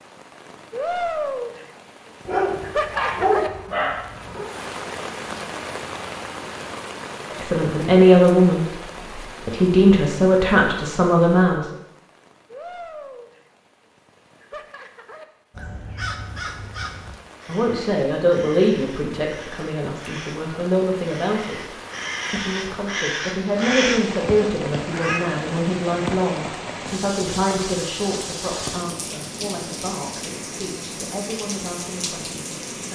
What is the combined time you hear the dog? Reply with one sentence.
You can hear the dog for 2 seconds altogether.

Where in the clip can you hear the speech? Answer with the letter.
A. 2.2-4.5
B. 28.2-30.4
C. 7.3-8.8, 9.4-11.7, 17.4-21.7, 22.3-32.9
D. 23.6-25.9
C.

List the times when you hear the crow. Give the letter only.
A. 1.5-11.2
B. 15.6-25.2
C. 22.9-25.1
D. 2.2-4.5
B.